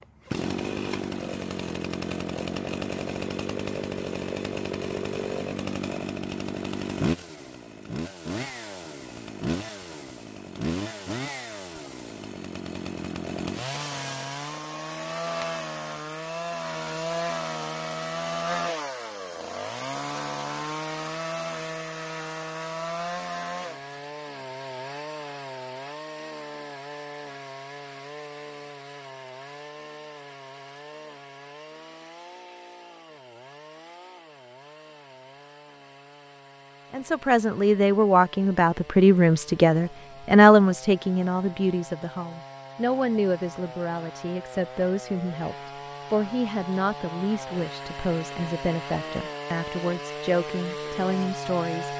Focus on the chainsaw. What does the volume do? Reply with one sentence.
The loudness of the chainsaw goes down, then up.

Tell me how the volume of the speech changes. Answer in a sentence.
The loudness of the speech goes down.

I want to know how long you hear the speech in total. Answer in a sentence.
The speech can be heard for 15 seconds in total.